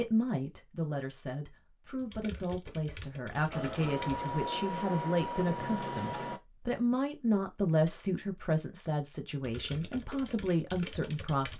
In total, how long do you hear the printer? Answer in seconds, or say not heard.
3 s.